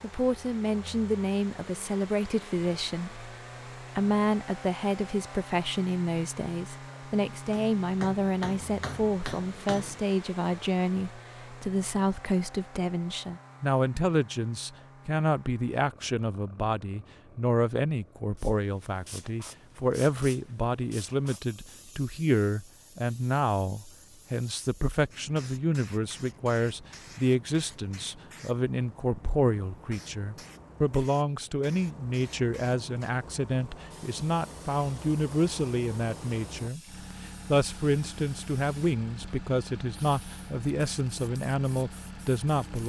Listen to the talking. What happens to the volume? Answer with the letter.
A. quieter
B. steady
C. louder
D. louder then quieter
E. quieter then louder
B.